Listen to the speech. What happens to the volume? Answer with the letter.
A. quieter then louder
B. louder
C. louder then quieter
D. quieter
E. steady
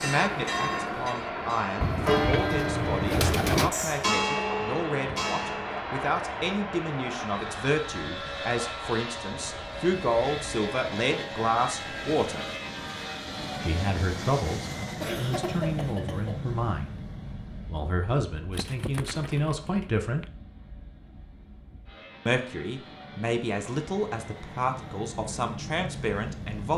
E.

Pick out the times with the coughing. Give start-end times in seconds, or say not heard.
15.0-16.5.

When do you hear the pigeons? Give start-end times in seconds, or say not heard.
1.8-3.8, 18.5-20.2.